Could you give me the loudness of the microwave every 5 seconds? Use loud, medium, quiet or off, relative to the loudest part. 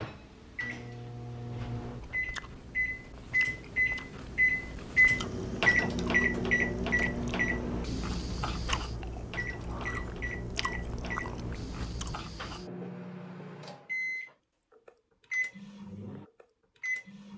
loud, loud, medium, medium.